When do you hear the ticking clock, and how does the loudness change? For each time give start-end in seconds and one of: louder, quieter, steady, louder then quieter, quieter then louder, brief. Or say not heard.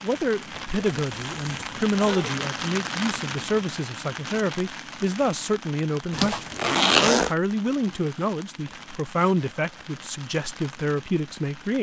not heard.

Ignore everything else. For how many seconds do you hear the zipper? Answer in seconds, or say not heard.
3 s.